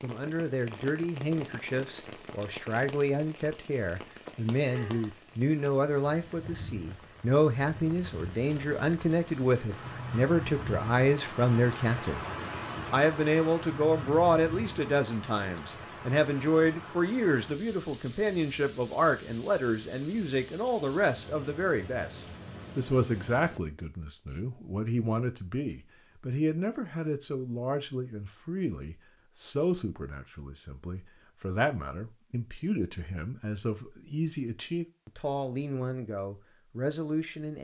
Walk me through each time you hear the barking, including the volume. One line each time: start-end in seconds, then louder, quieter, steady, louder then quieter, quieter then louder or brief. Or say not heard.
not heard.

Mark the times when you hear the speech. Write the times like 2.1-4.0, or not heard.
0.0-12.2, 12.9-37.5.